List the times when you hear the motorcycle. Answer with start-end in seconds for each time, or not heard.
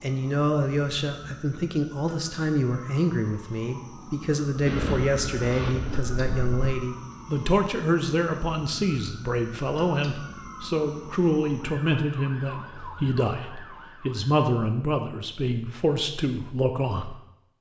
4.7-6.8.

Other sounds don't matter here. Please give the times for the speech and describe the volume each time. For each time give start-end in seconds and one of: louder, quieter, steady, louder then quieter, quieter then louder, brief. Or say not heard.
0.0-17.1 steady.